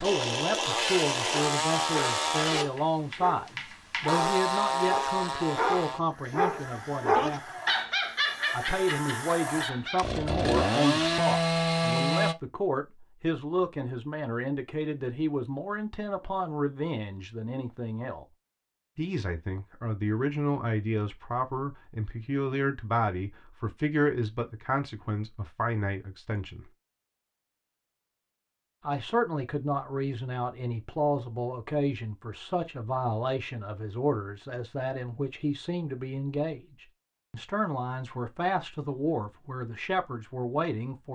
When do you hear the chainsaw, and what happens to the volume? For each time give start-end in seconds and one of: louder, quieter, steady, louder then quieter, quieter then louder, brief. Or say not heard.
0.0-12.3 quieter then louder.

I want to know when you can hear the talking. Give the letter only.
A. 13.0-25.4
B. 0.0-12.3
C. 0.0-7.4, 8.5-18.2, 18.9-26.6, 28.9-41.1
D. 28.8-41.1
C.